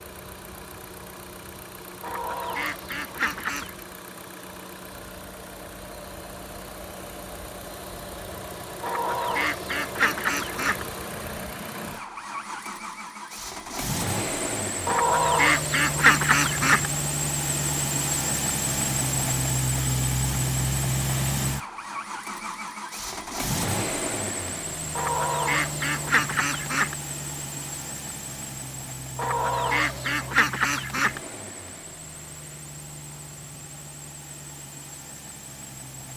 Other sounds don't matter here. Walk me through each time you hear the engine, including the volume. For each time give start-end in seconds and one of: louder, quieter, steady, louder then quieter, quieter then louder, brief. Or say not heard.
0.0-36.1 louder then quieter.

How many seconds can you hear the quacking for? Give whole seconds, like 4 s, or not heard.
10 s.